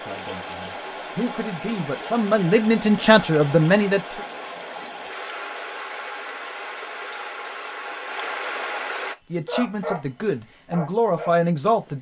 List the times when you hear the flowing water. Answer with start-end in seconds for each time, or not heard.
0.0-9.2.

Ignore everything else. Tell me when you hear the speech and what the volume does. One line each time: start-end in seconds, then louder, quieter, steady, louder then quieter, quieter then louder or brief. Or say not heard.
0.1-4.2 louder
9.3-11.9 brief.